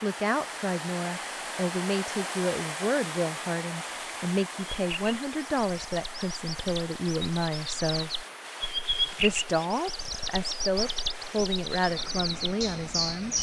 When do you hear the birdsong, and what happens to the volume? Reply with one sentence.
The birdsong can be heard from 4.8 to 13.3 s, getting louder then quieter.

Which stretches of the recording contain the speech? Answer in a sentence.
You can hear the speech from 0.0 to 8.1 s and from 9.2 to 13.3 s.